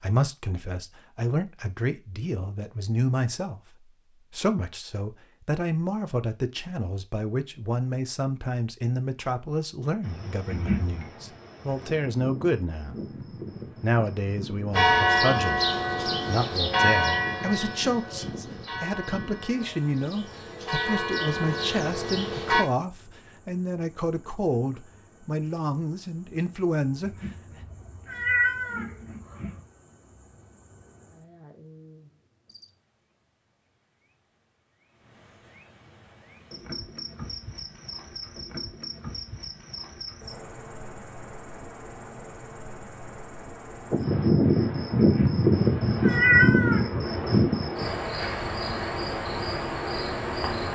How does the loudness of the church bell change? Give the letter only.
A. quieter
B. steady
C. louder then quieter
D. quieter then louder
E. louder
D.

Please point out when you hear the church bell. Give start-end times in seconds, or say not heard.
14.7-22.6.